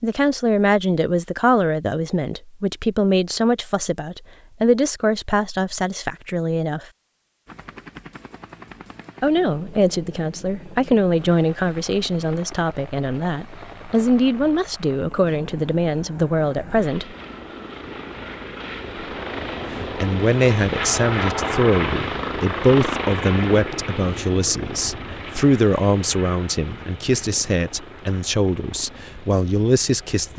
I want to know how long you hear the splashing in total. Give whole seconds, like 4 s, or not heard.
not heard.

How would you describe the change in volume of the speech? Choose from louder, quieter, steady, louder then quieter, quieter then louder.
steady.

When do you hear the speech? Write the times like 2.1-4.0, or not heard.
0.0-6.8, 9.2-17.1, 19.7-30.3.